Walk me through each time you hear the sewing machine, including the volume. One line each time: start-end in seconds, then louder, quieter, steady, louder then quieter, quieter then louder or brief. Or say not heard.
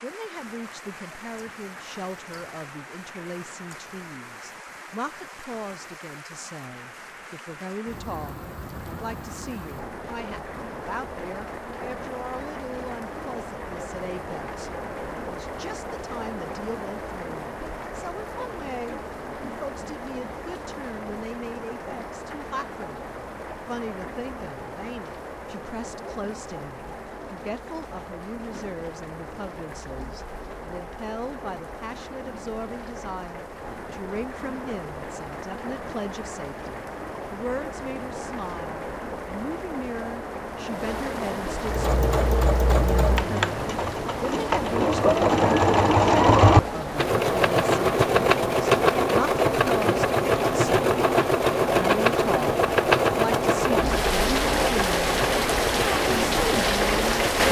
41.6-57.4 louder then quieter.